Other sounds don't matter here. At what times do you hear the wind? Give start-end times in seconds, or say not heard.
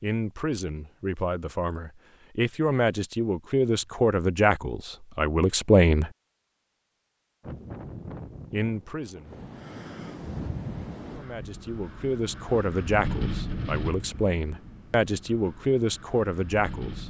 7.4-17.0.